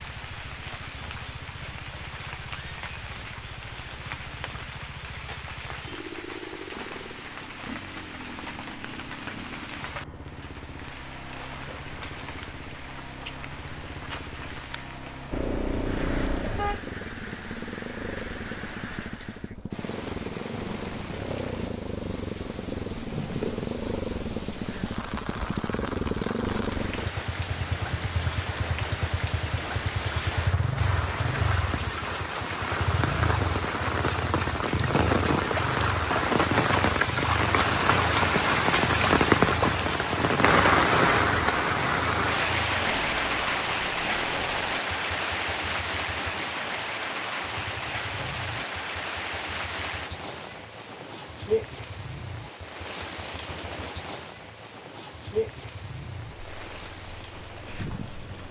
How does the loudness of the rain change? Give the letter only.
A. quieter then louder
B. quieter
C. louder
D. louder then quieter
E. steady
D.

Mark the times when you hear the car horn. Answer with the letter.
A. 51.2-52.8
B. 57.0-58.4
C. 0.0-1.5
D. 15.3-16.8
D.